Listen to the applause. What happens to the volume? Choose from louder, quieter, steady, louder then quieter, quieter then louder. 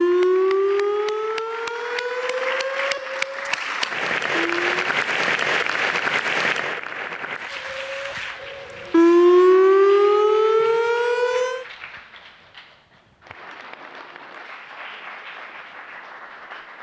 louder then quieter.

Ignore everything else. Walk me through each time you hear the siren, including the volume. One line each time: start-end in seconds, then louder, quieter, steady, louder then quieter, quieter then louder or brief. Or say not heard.
0.0-4.7 quieter
7.5-11.7 louder then quieter.